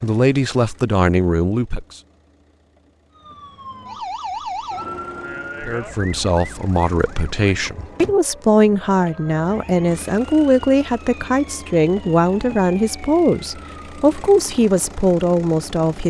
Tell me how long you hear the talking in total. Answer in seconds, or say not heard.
12 s.